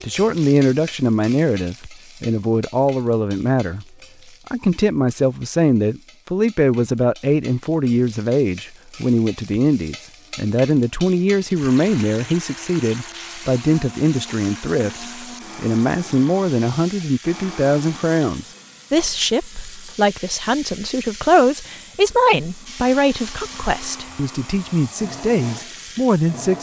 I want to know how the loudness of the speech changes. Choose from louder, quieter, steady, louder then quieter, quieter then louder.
steady.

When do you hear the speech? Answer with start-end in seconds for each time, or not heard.
0.0-3.9, 4.5-26.5.